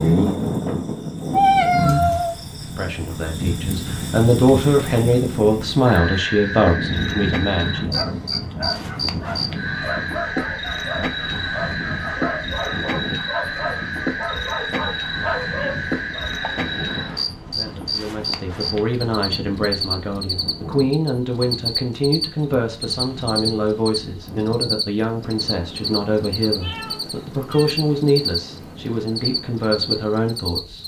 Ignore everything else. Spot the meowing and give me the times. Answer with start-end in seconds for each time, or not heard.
1.3-2.4, 16.4-17.3, 26.4-27.7.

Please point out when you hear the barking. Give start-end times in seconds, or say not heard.
7.8-16.4.